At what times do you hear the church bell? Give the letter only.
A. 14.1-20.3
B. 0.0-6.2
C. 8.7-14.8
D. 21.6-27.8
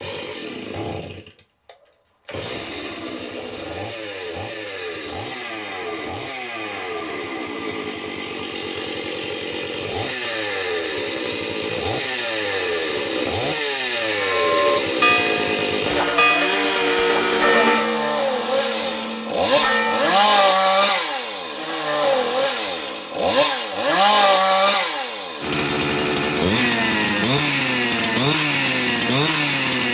A.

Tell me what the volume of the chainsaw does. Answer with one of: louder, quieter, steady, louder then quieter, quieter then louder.
louder.